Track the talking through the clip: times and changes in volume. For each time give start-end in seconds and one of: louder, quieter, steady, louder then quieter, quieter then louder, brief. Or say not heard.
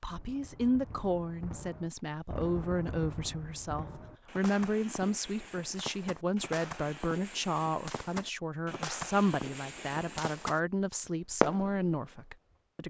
0.0-12.8 steady.